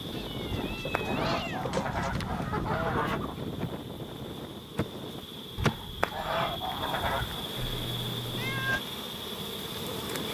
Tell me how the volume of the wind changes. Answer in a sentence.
The volume of the wind goes down.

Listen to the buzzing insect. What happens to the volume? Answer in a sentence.
The volume of the buzzing insect goes up.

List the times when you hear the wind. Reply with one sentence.
You can hear the wind from 0.0 to 10.3 s.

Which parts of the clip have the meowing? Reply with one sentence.
The meowing can be heard from 0.1 to 2.4 s and from 7.5 to 8.8 s.